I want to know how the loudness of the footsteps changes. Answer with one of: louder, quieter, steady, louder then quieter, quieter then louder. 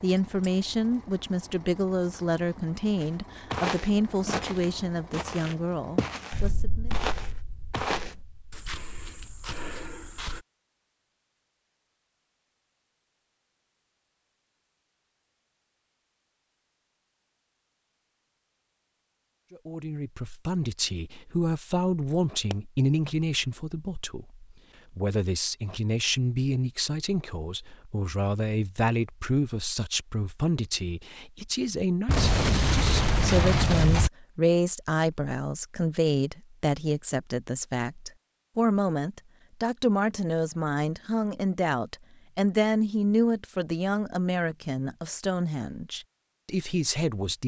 quieter.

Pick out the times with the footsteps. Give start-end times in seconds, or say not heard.
3.0-10.4.